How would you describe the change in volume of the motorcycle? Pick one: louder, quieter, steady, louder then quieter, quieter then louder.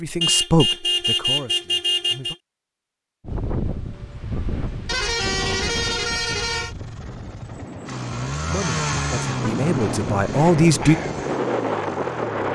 louder then quieter.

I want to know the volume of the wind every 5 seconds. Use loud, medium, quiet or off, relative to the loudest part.
medium, medium, loud.